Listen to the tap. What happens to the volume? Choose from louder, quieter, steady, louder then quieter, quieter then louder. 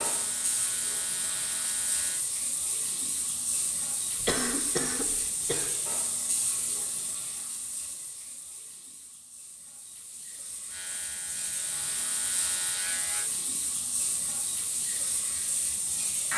quieter then louder.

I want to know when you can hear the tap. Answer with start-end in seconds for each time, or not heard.
0.0-16.3.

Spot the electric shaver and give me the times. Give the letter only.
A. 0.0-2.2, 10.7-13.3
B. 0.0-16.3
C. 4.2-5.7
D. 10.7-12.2
A.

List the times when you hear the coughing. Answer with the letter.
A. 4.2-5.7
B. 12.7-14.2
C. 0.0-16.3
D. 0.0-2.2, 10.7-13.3
A.